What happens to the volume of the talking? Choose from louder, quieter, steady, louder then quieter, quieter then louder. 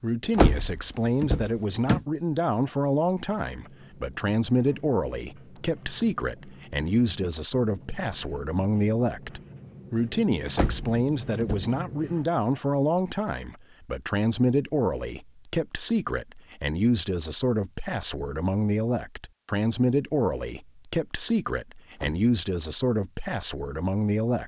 steady.